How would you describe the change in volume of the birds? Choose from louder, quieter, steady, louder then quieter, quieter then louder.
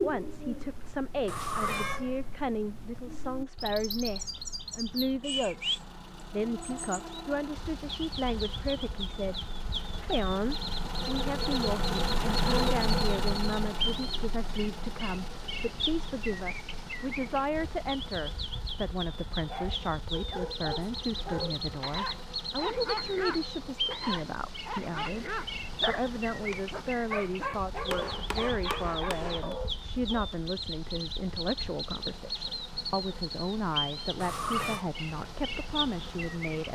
steady.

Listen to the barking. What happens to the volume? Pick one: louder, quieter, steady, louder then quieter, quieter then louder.
steady.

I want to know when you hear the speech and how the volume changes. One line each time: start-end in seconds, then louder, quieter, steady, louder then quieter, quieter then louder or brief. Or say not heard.
0.0-36.7 steady.